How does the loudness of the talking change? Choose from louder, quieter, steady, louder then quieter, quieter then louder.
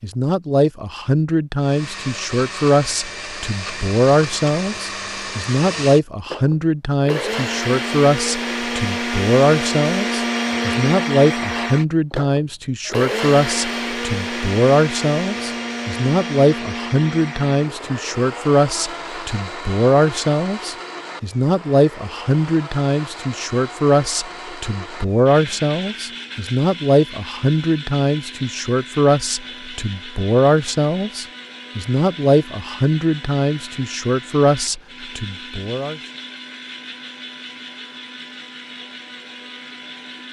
steady.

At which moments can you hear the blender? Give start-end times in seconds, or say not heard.
1.6-40.2.